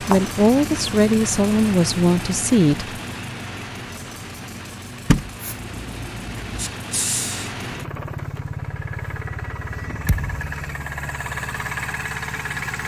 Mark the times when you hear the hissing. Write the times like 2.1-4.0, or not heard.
5.4-7.5.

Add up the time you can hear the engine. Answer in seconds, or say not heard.
13 s.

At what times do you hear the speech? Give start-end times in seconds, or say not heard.
0.1-3.0.